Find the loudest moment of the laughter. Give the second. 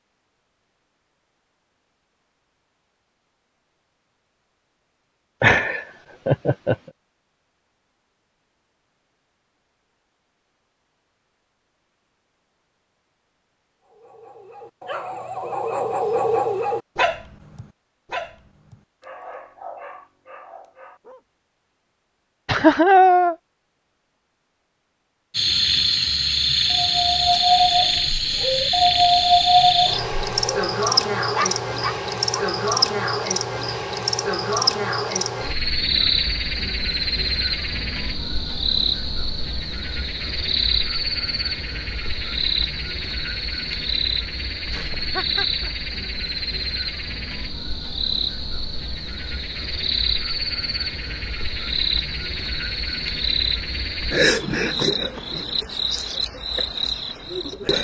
23 s.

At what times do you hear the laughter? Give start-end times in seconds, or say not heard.
5.4-6.8, 22.4-23.4, 44.7-45.7.